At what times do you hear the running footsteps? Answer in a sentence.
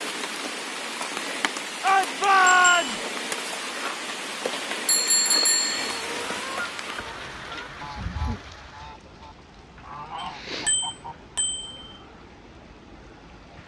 You can't hear the running footsteps here.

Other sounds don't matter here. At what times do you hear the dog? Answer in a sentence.
You can't hear the dog here.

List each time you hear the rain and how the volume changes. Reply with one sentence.
You can hear the rain from 0.0 to 13.6 s, getting quieter.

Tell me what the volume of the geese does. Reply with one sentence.
The volume of the geese goes down, then up.